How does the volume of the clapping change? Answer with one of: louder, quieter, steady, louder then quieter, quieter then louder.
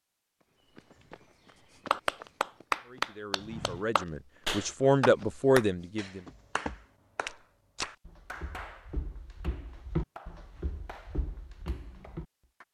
quieter.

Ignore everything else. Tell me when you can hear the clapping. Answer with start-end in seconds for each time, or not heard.
1.9-12.6.